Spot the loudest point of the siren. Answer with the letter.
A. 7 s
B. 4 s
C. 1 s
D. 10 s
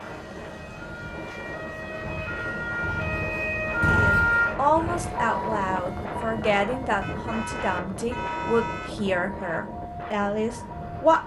B.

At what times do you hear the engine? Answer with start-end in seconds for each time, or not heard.
2.0-5.2.